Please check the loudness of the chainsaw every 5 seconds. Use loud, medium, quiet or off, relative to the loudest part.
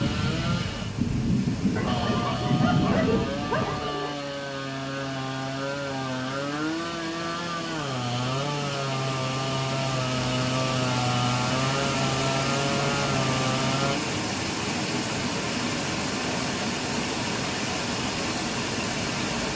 medium, loud, loud, off.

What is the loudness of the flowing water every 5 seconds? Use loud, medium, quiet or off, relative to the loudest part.
quiet, medium, loud, loud.